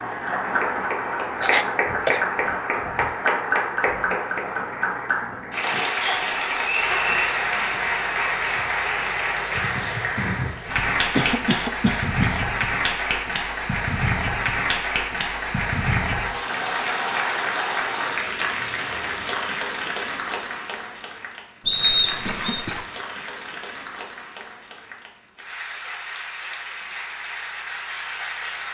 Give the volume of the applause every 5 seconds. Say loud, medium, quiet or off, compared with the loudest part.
loud, loud, loud, loud, medium, medium.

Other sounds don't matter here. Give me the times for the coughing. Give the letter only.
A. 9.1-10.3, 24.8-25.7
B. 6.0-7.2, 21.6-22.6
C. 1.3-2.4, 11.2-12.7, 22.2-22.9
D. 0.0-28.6
C.